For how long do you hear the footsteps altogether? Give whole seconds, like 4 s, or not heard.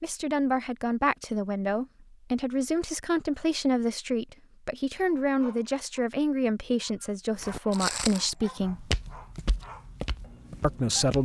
4 s.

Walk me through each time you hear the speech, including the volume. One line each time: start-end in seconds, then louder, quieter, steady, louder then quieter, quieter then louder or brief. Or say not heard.
0.0-8.9 steady
10.6-11.2 brief.